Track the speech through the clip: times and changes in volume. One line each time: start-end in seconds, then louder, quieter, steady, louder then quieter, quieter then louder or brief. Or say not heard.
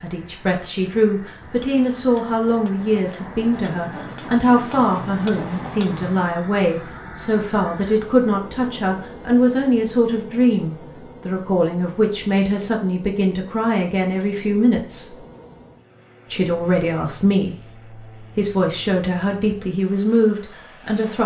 0.0-15.2 steady
16.3-21.2 quieter then louder.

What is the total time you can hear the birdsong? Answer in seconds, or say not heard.
not heard.